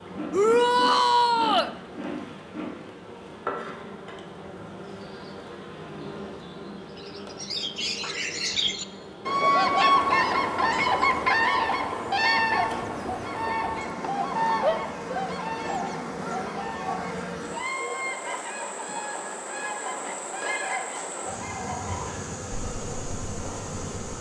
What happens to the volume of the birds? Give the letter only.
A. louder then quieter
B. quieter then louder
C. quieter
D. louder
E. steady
C.